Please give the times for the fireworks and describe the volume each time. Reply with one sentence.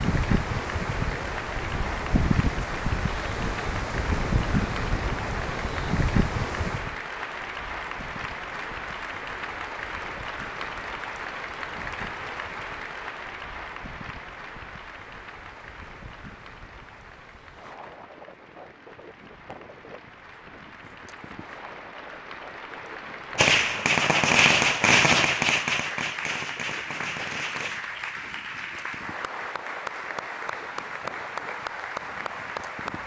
The fireworks can be heard from 23.4 to 27.8 s, getting quieter.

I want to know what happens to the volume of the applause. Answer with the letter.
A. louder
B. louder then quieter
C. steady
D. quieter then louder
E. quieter
D.